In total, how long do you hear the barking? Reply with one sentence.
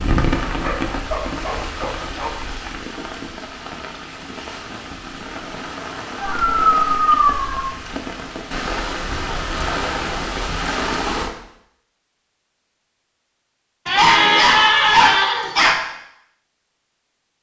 The barking can be heard for 5 seconds in total.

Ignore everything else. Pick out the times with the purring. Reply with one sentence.
You can't hear the purring here.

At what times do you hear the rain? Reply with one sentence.
The rain can be heard from 0.0 to 11.3 s.